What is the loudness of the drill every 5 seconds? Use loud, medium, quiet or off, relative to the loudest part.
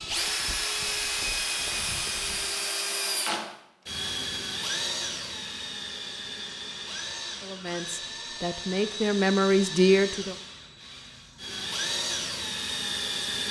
loud, medium, loud.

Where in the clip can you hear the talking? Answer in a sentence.
The talking can be heard from 7.4 to 10.3 s.